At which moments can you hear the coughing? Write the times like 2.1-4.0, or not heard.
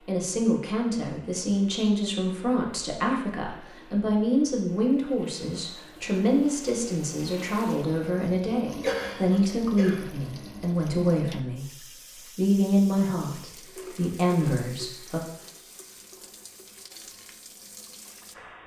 8.8-10.1.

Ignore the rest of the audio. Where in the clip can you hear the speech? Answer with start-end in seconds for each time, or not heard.
0.1-15.2.